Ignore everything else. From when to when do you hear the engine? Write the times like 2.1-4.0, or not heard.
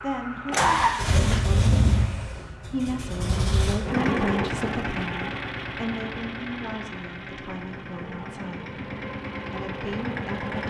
0.0-10.6.